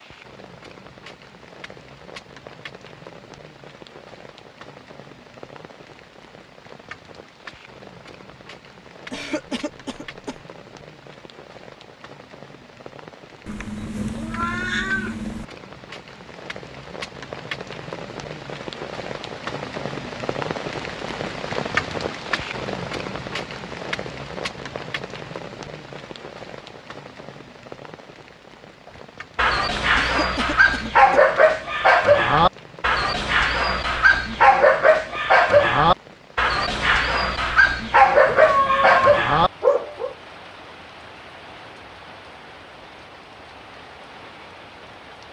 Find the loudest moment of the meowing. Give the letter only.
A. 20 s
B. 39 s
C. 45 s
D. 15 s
B.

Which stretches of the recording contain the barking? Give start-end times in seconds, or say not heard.
29.4-40.1.